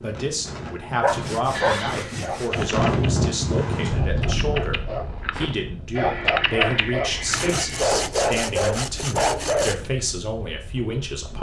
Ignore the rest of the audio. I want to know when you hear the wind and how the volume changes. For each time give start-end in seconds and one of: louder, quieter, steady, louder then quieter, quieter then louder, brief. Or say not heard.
0.0-11.3 louder then quieter.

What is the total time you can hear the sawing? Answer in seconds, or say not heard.
4 s.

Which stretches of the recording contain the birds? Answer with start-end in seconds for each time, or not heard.
not heard.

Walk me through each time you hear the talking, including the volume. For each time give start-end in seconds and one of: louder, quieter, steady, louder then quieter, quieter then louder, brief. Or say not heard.
0.0-11.3 steady.